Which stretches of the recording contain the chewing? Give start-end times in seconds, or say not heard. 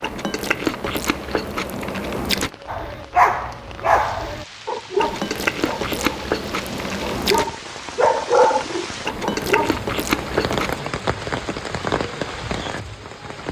0.0-2.5, 5.0-7.5, 9.1-10.9.